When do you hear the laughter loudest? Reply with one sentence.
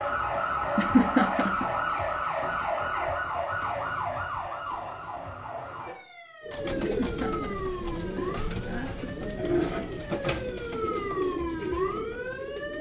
The loudest moment of the laughter is at 1 second.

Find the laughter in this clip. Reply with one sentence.
You can hear the laughter from 0.8 to 1.7 s and from 6.8 to 9.1 s.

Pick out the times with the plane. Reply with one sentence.
The plane can't be heard in this clip.